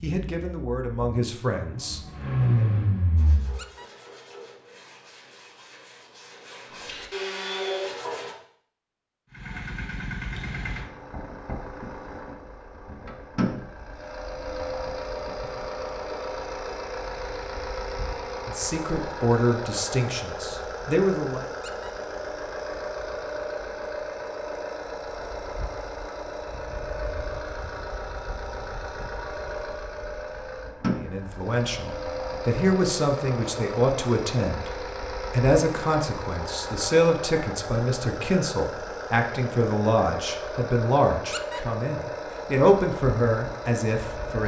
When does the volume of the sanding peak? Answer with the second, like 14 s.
8 s.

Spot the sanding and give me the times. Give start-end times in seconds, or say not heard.
3.1-8.3.